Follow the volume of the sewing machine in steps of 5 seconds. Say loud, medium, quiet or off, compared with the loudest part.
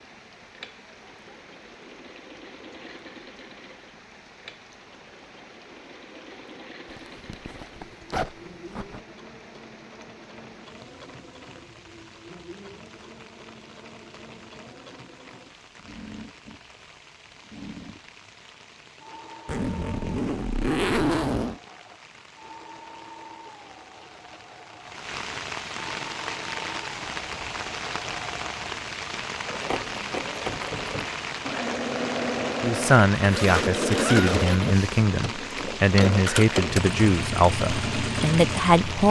quiet, quiet, quiet, quiet, quiet, medium, loud, loud.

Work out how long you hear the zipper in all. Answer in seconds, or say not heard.
6 s.